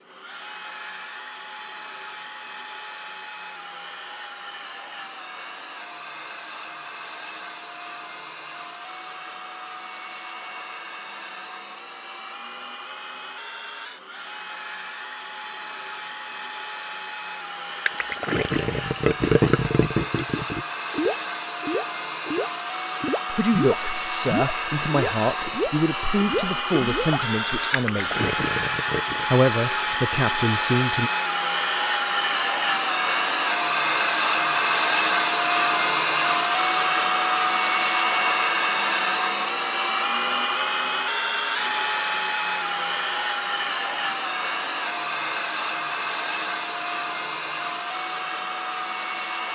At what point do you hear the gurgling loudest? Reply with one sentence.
The volume of the gurgling peaks at 19 seconds.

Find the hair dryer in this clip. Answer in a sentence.
The hair dryer can be heard from 0.0 to 49.5 s.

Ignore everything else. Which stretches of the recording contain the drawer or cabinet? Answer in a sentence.
You can't hear the drawer or cabinet here.